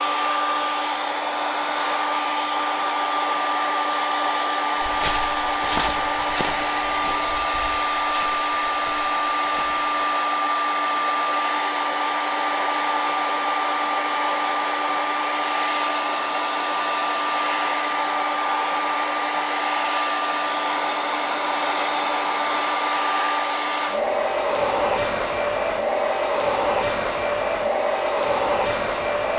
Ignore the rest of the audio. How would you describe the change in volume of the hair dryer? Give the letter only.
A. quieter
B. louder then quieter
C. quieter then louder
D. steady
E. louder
D.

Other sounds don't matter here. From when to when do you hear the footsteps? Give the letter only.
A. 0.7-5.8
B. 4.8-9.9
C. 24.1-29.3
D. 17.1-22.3
B.